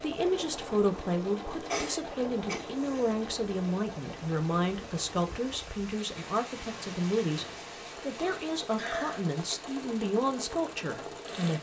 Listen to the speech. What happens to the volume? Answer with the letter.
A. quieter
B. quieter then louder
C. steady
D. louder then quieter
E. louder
C.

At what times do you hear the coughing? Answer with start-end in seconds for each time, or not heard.
1.6-3.1, 8.2-9.2.